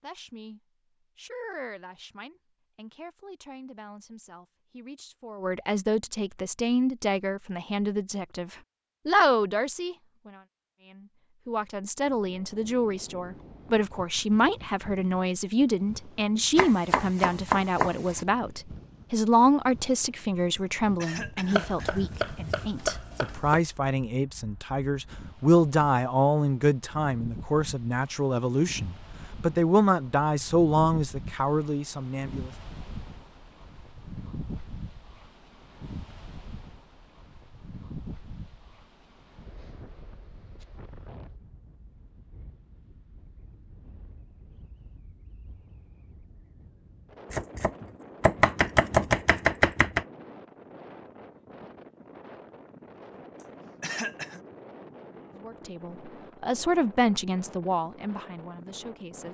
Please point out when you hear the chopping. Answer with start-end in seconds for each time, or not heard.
16.6-18.2, 21.5-23.6, 47.3-50.0.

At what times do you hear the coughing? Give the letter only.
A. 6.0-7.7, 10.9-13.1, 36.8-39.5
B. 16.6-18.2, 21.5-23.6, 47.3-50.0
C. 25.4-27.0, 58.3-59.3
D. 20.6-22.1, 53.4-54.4
D.